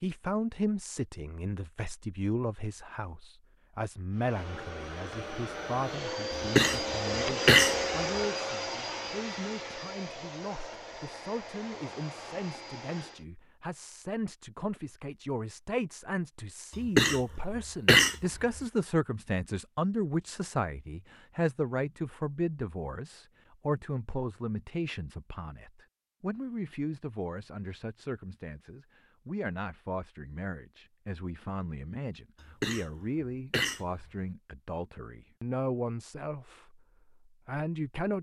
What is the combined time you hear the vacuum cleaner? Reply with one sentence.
The vacuum cleaner can be heard for 9 seconds in total.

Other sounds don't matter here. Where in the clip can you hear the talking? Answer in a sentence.
You can hear the talking from 0.0 to 38.1 s.